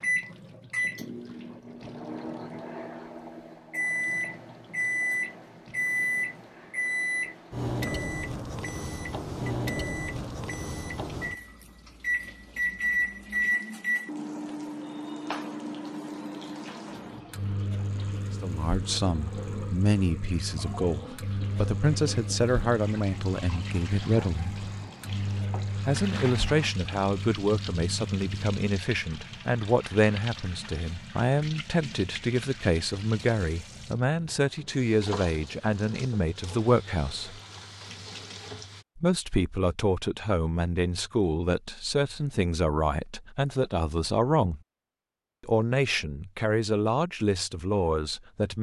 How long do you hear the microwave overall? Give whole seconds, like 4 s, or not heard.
29 s.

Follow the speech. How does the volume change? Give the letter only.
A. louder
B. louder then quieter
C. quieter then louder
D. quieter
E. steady
E.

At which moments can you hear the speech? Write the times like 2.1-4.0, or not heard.
18.4-24.6, 25.9-37.4, 39.0-44.6, 45.4-48.5.